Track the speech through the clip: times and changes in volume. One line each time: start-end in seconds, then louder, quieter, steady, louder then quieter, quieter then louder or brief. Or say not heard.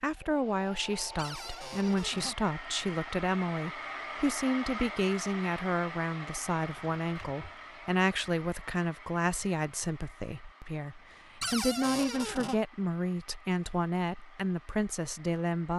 0.0-15.7 steady.